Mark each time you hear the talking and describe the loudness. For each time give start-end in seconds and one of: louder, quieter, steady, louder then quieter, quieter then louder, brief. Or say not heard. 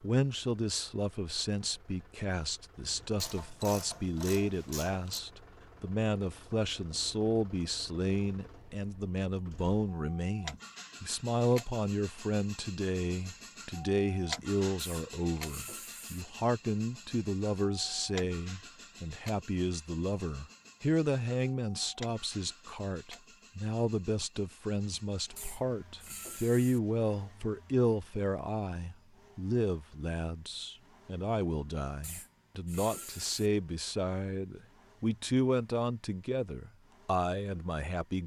0.0-38.2 steady.